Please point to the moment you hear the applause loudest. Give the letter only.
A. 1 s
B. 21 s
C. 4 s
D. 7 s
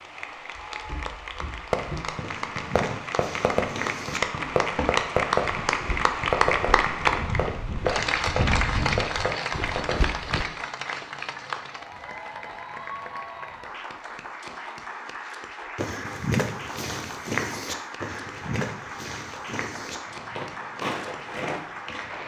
D.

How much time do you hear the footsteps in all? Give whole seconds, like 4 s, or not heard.
16 s.